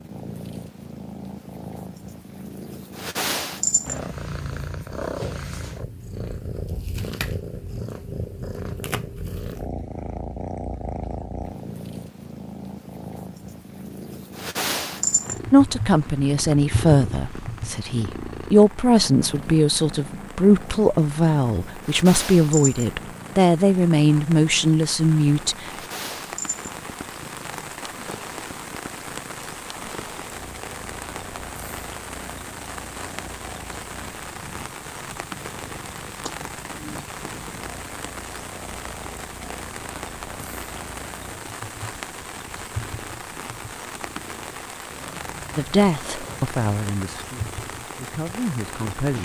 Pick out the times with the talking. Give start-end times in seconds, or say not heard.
15.5-25.7, 45.5-49.2.